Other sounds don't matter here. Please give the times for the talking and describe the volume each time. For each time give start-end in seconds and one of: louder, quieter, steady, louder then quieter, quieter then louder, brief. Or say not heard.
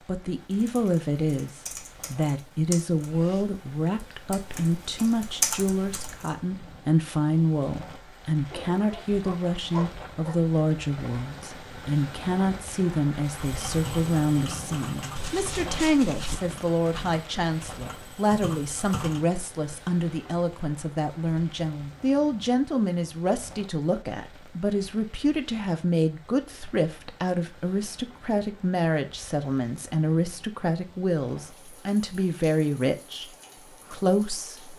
0.1-34.7 steady.